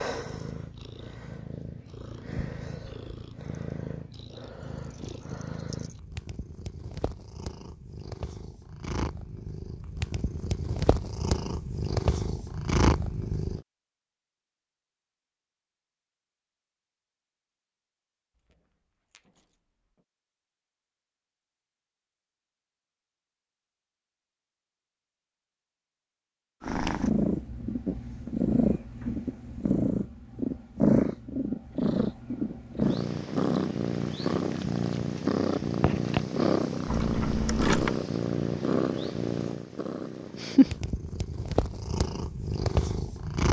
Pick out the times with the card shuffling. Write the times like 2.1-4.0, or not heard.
34.3-36.2.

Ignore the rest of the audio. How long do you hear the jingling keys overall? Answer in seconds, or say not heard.
2 s.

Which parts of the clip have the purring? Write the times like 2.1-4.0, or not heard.
0.0-13.6, 26.6-43.4.